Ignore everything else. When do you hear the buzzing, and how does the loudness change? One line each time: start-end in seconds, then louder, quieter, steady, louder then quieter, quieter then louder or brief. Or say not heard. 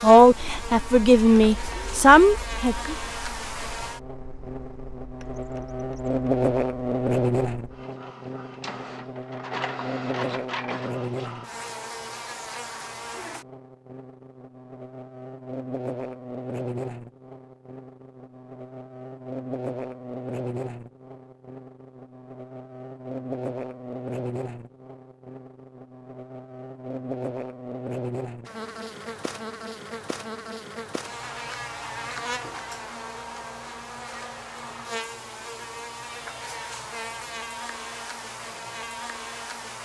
0.0-39.7 quieter.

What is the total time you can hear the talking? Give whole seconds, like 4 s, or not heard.
3 s.